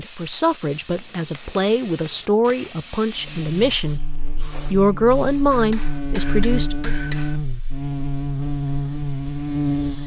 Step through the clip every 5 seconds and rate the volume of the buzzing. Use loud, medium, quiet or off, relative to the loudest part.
medium, loud.